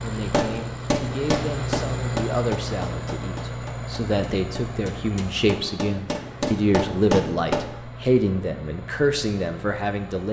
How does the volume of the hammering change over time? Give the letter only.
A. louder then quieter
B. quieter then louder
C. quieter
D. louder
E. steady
B.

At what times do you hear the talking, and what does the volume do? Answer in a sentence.
You can hear the talking from 0.0 to 10.2 s, getting louder.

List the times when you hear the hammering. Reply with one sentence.
The hammering can be heard from 0.1 to 7.7 s.